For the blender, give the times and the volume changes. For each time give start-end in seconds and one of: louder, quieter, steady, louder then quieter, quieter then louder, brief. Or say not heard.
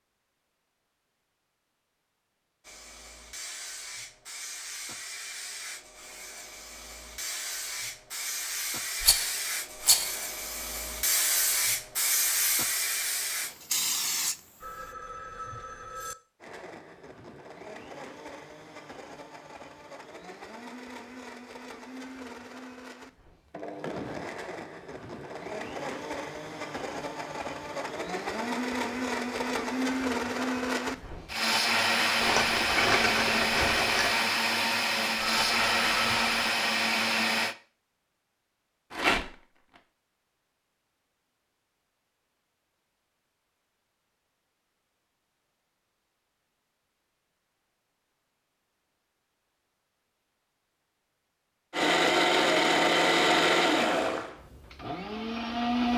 16.4-37.5 louder
51.7-55.9 quieter then louder.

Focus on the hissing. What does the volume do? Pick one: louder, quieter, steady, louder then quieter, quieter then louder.
louder.